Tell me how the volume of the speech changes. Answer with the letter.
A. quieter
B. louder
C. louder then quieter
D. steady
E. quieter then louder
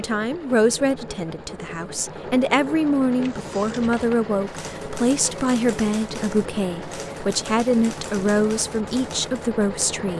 D.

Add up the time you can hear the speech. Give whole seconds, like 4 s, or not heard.
10 s.